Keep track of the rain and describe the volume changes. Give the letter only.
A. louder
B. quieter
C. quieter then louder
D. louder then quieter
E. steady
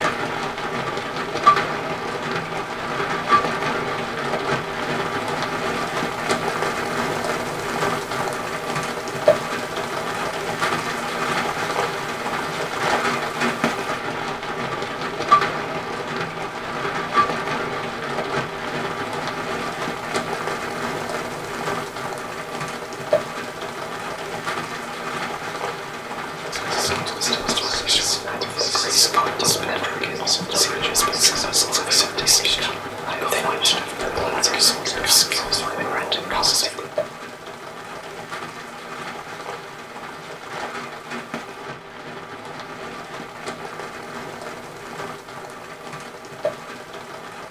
B.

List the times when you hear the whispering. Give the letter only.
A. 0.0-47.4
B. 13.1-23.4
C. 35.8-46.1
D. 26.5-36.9
D.